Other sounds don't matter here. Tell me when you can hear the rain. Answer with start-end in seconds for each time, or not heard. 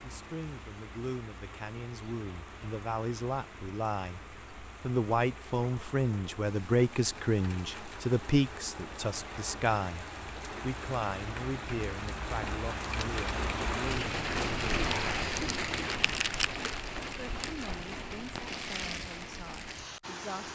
0.0-20.5.